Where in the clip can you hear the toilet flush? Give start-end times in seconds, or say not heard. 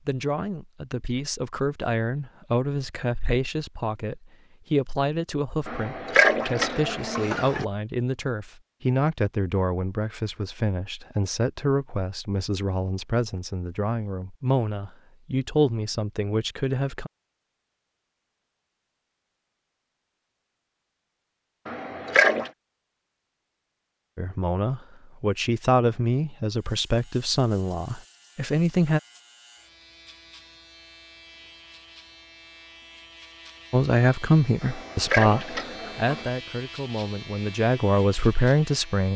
5.7-7.7, 21.6-22.5, 34.6-36.3.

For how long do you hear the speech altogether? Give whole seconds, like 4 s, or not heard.
27 s.